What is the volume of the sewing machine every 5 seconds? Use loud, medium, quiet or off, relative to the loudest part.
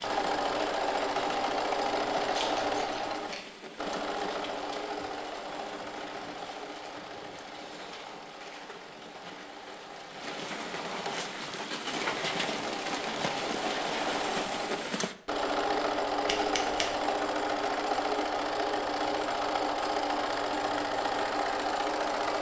loud, quiet, medium, loud, loud.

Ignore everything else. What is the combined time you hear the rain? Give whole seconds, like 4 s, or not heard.
15 s.